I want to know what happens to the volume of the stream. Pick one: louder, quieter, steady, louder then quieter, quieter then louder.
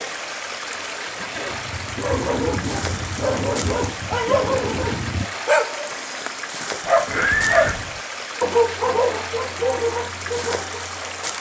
steady.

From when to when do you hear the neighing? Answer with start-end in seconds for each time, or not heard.
1.0-1.6, 7.0-7.8.